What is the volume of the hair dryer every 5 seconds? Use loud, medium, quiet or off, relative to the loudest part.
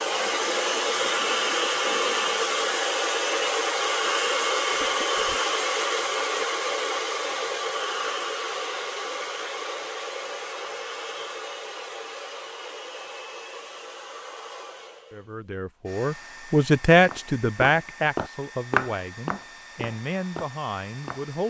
loud, loud, quiet, quiet, quiet.